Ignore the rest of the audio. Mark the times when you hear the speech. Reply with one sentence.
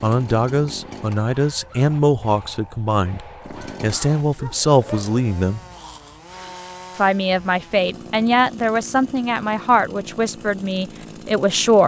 The speech can be heard from 0.0 to 5.6 s and from 7.0 to 11.8 s.